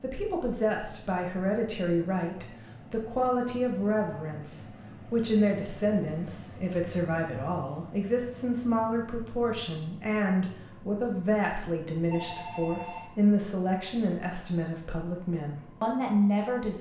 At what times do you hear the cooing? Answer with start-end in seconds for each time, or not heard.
not heard.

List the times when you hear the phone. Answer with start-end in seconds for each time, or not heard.
12.1-13.2.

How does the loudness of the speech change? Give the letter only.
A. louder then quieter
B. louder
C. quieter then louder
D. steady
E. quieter
D.